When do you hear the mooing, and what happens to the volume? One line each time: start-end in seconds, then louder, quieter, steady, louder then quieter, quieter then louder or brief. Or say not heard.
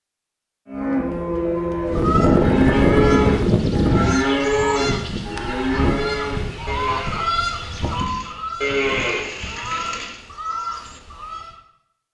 0.7-10.2 quieter then louder.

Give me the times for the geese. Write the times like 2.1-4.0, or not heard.
1.9-11.6.